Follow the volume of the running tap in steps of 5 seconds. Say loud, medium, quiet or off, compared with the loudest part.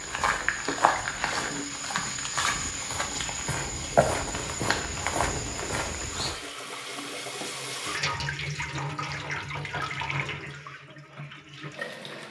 medium, loud, loud.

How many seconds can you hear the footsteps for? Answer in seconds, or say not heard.
6 s.